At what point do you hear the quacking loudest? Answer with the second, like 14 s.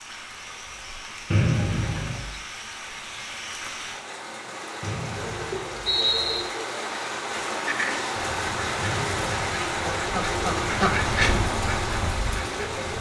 11 s.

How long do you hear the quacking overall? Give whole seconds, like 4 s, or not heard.
5 s.